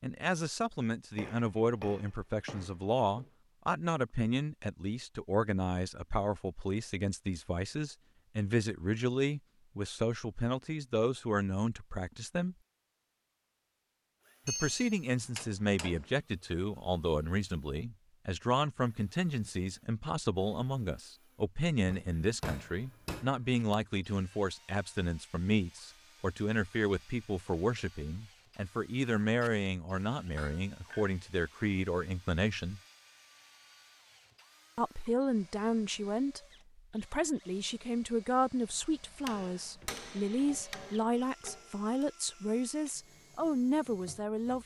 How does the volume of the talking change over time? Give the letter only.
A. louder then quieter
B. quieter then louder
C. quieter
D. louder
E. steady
E.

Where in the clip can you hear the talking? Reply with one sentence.
The talking can be heard from 0.0 to 12.6 s, from 14.4 to 32.8 s and from 34.8 to 44.6 s.